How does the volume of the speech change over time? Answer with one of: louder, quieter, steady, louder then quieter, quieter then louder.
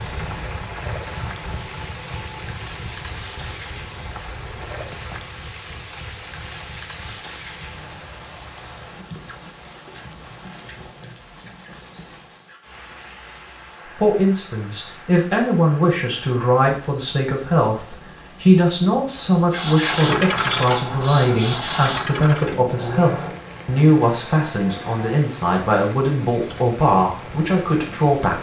steady.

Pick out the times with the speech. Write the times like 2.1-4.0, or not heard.
13.8-28.3.